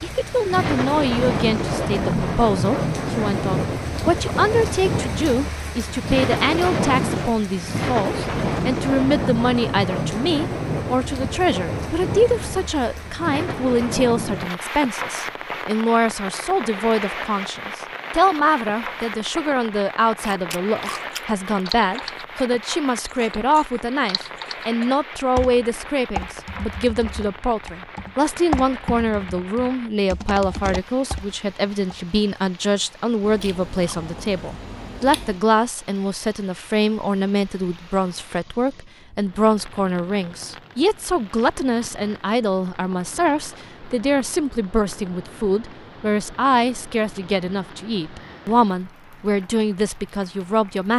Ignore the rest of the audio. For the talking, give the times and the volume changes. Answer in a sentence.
You can hear the talking from 0.0 to 50.9 s, at a steady volume.